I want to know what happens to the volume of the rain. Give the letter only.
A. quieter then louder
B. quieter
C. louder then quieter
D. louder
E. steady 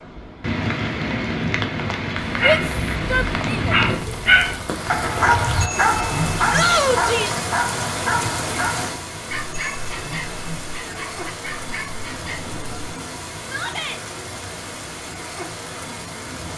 B.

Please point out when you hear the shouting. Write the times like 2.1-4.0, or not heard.
2.4-3.8, 6.5-7.4, 13.4-14.0.